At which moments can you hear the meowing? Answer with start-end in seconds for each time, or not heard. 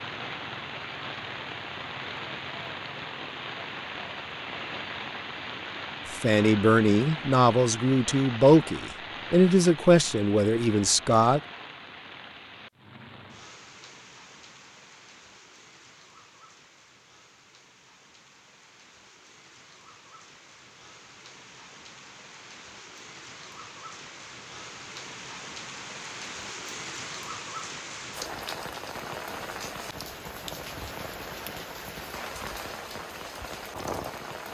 not heard.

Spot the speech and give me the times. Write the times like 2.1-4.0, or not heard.
6.1-11.4.